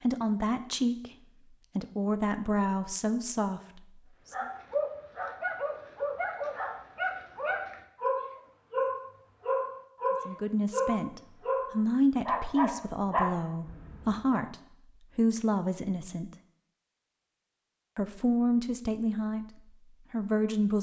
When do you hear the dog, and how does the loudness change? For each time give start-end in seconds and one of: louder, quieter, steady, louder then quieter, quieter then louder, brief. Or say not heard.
4.3-14.4 steady.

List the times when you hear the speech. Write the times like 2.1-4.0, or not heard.
0.0-1.1, 1.8-4.3, 10.2-14.6, 15.2-16.3, 17.9-20.7.